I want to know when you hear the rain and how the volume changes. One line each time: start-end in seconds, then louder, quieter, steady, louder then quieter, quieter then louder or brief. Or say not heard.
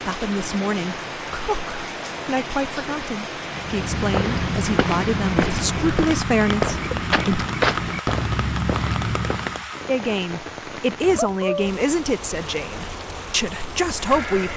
0.0-14.5 steady.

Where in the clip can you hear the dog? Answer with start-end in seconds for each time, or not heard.
not heard.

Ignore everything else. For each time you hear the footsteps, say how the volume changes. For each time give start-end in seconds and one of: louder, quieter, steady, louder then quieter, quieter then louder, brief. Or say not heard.
3.5-9.7 steady.